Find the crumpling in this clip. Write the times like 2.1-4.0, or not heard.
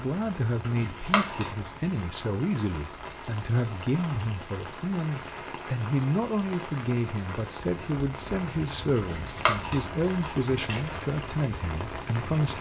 0.6-1.5, 8.9-10.9.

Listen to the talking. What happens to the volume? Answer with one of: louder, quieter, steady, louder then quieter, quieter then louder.
steady.